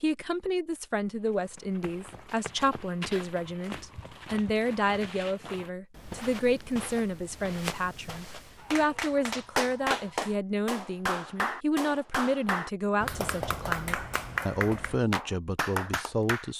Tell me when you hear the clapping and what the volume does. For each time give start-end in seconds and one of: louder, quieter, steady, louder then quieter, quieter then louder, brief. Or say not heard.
8.6-16.5 steady.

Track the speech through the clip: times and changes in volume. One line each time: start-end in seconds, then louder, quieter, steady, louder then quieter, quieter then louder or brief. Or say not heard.
0.0-16.5 steady.